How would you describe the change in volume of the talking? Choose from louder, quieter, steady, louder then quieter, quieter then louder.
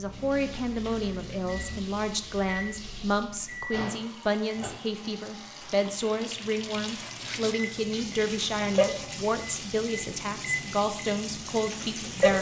steady.